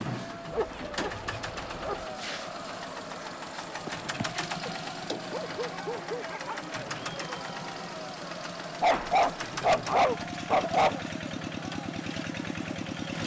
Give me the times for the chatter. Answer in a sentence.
The chatter can be heard from 0.1 to 13.2 s.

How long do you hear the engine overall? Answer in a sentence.
You can hear the engine for 13 seconds altogether.